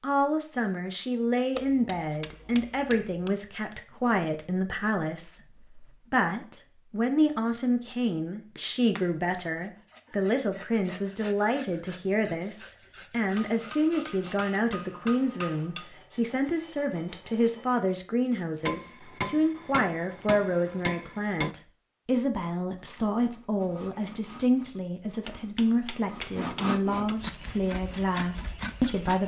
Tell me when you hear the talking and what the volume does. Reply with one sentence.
The talking can be heard from 0.0 to 29.2 s, at a steady volume.